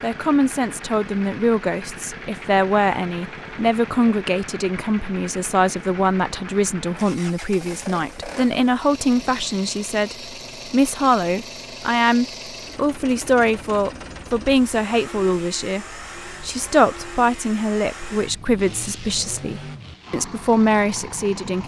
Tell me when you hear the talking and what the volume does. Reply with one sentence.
You can hear the talking from 0.0 to 21.6 s, at a steady volume.